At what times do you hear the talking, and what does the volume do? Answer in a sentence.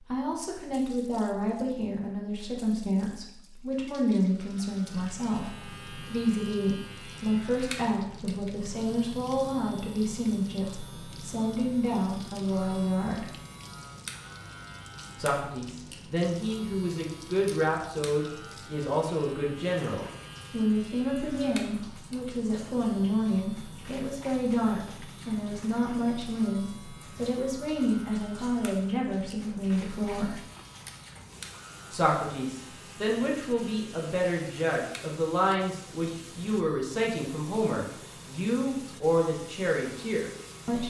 The talking can be heard from 0.1 to 13.2 s, at a steady volume; from 15.2 to 30.4 s, at a steady volume; and from 31.9 to 40.8 s, at a steady volume.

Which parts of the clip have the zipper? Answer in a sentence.
The zipper can't be heard in this clip.